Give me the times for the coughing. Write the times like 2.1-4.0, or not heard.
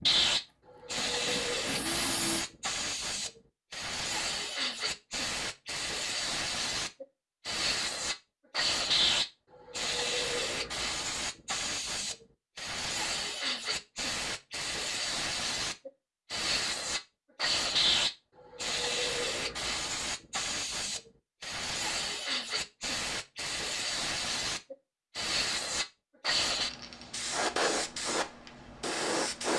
not heard.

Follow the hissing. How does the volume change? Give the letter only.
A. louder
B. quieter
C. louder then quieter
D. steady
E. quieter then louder
D.